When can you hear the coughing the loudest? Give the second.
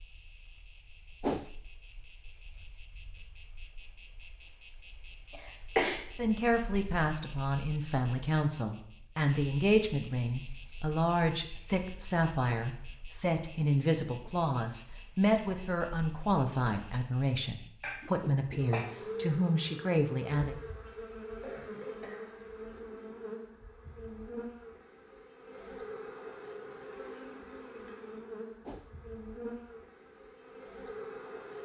6 s.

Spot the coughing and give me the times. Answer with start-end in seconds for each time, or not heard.
5.3-6.0, 17.8-18.9, 21.2-22.3.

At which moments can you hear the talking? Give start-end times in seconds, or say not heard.
6.2-20.6.